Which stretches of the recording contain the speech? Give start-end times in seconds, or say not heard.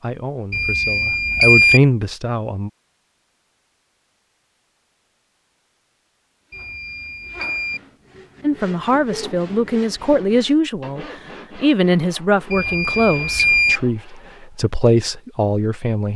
0.0-2.7, 8.4-16.1.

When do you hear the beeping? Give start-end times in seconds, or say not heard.
0.5-1.8, 6.5-7.8, 12.5-13.8.